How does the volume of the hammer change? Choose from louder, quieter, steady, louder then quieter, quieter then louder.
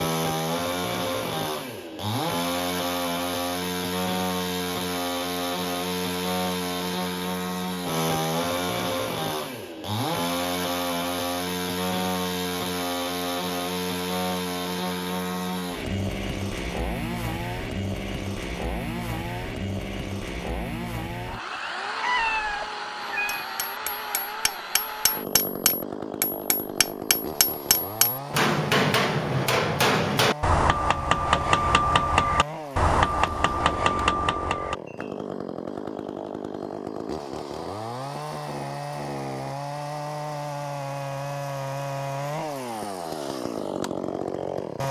louder.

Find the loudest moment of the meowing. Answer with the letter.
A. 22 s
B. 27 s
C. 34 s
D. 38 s
A.